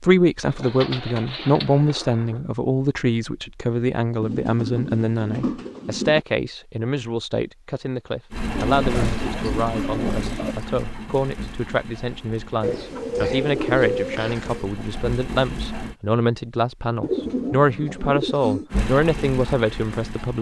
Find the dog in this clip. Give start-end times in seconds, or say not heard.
not heard.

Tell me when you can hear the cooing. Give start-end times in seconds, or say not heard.
0.5-2.5, 4.2-6.2, 8.5-10.6, 12.6-14.7, 17.0-18.6.